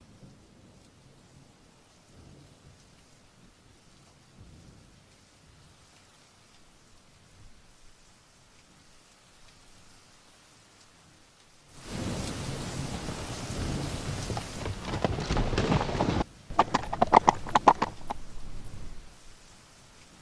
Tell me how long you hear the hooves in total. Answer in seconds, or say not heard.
6 s.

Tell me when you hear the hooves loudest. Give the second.
17 s.